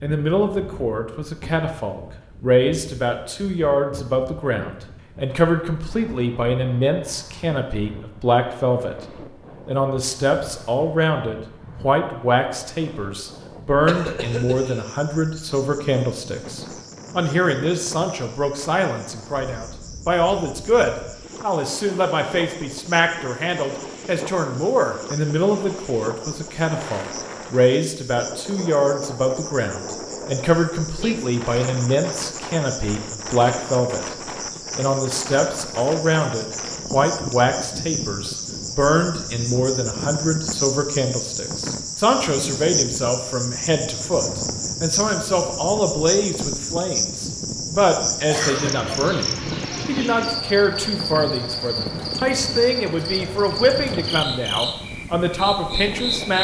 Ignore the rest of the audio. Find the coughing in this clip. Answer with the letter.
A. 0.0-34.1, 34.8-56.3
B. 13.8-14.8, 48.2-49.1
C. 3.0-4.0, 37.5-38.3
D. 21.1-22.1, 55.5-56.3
B.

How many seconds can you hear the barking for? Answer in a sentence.
You can't hear the barking here.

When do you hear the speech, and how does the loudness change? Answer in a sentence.
You can hear the speech from 0.0 to 34.1 s, at a steady volume; and from 34.8 to 56.3 s, at a steady volume.